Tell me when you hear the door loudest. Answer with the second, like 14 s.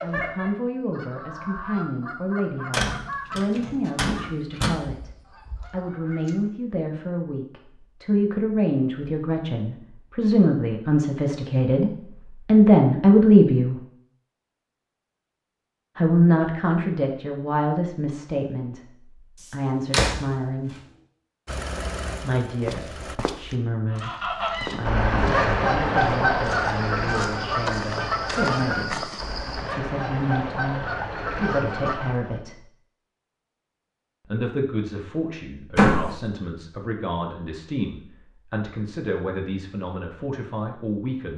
36 s.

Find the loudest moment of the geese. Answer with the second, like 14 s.
26 s.